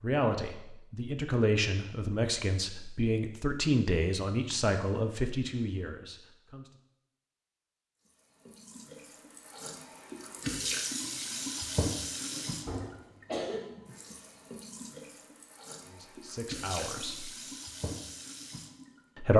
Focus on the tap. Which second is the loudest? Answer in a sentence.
The volume of the tap peaks at 11 seconds.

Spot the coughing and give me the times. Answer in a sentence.
The coughing can be heard from 12.3 to 13.6 s.